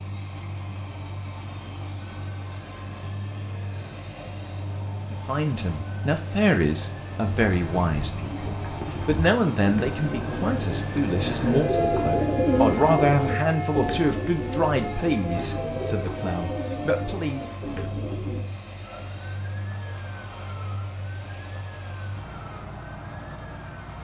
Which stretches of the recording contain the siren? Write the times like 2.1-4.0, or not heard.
0.0-23.9.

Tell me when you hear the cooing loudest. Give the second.
13 s.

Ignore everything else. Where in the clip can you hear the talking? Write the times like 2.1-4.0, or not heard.
5.0-17.4.